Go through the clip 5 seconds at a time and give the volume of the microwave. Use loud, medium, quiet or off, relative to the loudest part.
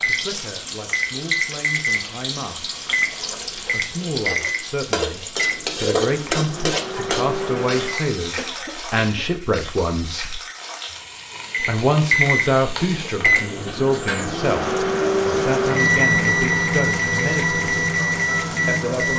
medium, medium, loud, loud.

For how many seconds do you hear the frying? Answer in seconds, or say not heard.
19 s.